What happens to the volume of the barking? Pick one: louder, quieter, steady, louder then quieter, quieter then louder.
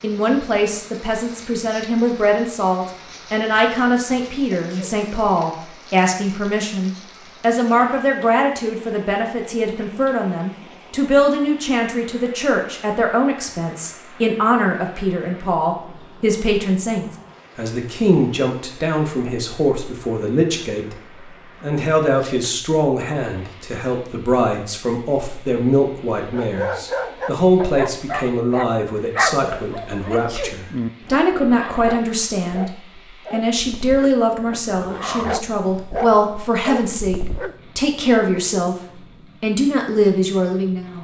quieter then louder.